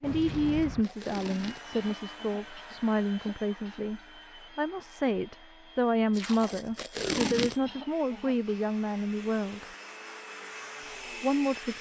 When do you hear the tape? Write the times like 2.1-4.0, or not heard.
0.1-1.9, 6.1-7.6.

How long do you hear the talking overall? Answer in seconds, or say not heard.
10 s.